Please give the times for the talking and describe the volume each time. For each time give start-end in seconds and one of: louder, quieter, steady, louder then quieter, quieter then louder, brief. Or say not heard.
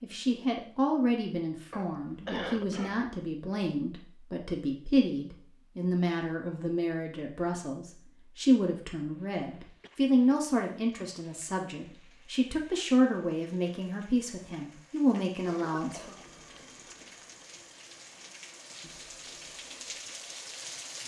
0.0-16.1 steady.